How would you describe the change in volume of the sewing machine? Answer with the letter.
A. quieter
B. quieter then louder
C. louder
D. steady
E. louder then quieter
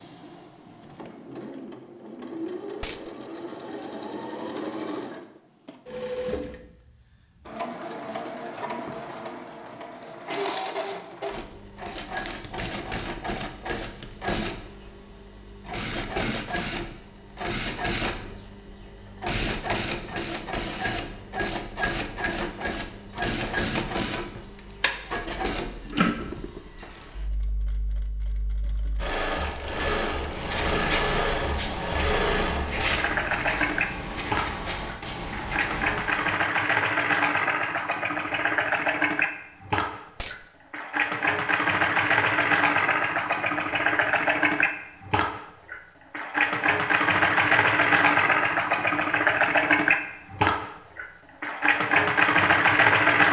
C.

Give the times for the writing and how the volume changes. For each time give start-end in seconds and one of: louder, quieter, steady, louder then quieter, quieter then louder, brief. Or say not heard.
30.0-36.4 steady.